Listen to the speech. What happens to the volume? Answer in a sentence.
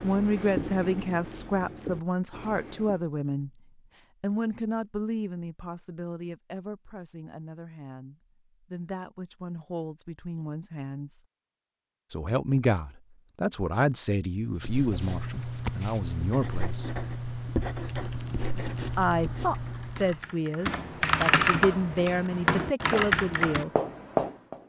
The volume of the speech goes down, then up.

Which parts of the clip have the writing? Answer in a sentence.
You can hear the writing from 0.0 to 3.0 s, from 14.5 to 20.2 s and from 22.9 to 24.6 s.